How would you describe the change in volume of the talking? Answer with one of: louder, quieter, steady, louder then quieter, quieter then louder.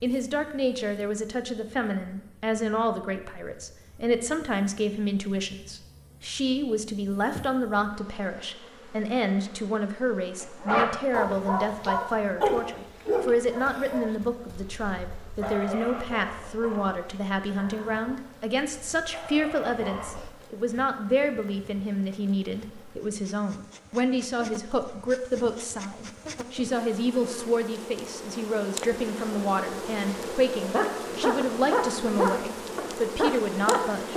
steady.